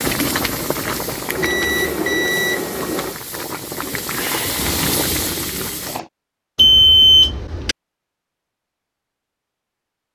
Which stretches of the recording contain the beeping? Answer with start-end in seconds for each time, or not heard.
1.3-3.1, 6.5-7.8.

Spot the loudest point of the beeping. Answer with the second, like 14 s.
7 s.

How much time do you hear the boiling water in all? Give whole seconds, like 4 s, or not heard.
6 s.